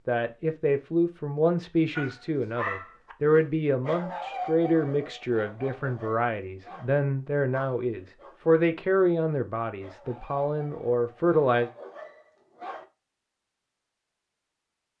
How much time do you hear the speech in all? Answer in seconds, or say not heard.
12 s.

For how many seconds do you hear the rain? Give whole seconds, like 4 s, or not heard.
not heard.